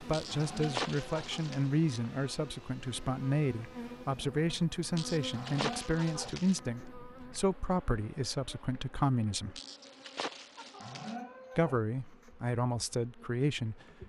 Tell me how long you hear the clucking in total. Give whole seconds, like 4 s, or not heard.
5 s.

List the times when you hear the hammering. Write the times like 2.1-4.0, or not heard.
not heard.